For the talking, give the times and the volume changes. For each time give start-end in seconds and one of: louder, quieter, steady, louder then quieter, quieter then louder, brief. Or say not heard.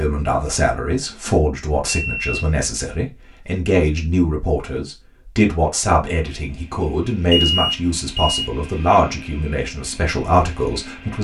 0.0-11.1 steady.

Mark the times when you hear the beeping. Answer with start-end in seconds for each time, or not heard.
1.9-2.5, 7.3-8.4.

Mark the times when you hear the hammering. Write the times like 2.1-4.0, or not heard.
not heard.